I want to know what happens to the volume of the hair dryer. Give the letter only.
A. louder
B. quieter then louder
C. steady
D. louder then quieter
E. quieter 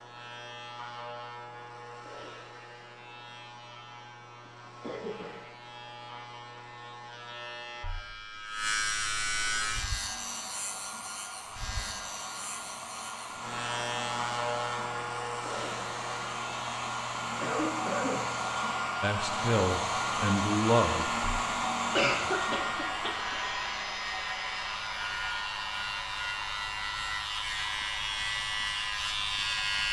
D.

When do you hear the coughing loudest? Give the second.
22 s.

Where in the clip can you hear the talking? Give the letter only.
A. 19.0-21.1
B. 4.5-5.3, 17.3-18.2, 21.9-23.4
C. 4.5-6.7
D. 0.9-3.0
A.